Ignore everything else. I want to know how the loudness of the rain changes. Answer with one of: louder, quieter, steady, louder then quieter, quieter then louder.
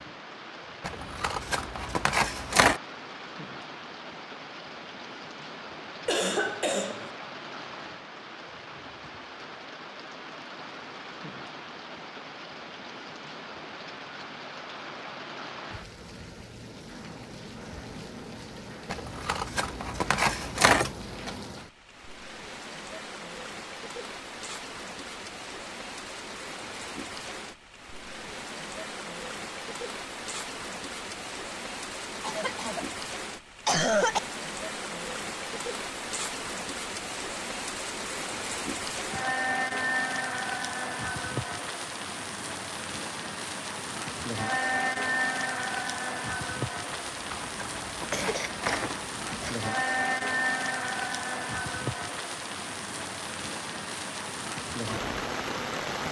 louder.